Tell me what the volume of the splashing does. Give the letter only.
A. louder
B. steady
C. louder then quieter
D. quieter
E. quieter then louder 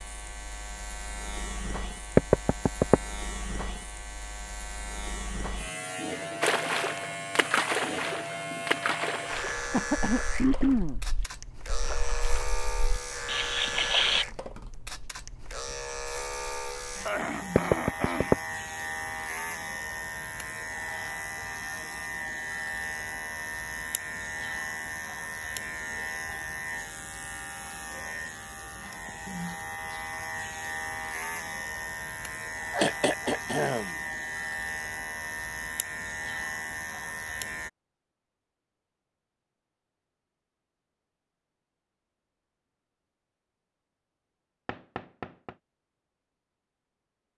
E.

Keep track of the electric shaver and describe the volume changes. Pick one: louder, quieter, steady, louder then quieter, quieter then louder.
steady.